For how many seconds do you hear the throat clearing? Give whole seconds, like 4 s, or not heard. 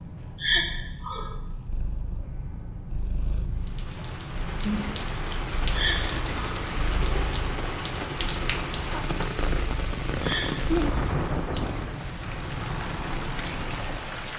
3 s.